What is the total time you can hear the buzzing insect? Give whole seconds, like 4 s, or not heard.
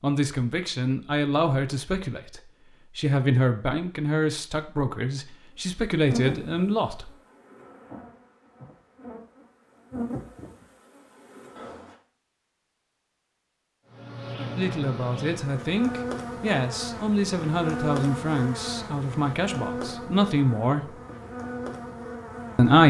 15 s.